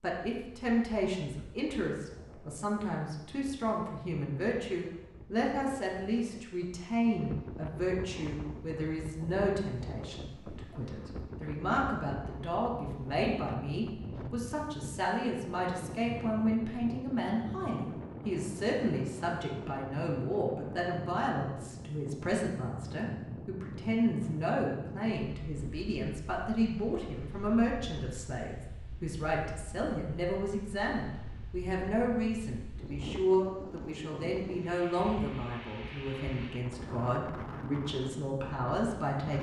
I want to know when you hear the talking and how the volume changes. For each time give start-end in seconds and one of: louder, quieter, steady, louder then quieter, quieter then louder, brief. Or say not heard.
0.0-39.3 steady.